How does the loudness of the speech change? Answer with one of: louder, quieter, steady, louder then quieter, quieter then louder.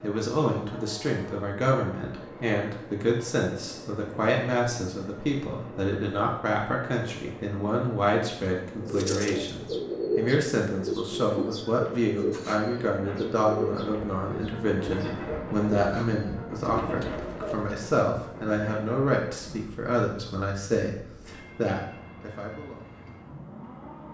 steady.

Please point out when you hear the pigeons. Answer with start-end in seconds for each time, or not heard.
8.8-17.8.